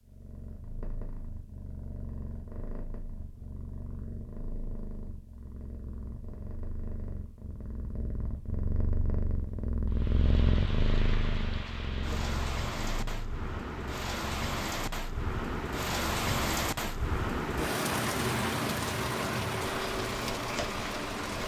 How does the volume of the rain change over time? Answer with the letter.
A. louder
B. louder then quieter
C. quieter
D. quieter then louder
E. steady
A.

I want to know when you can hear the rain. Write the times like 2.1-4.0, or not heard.
9.9-21.4.